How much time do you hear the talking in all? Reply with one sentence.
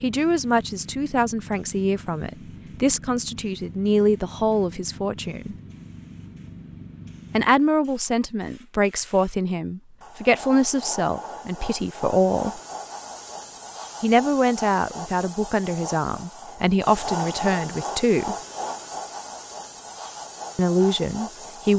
You can hear the talking for 16 seconds altogether.